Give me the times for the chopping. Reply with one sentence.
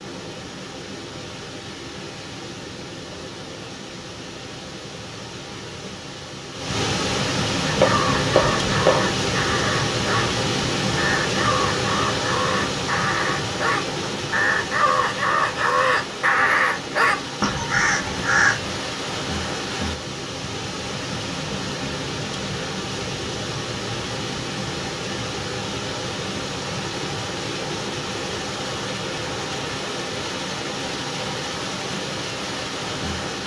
You can hear the chopping from 7.8 to 9.1 s.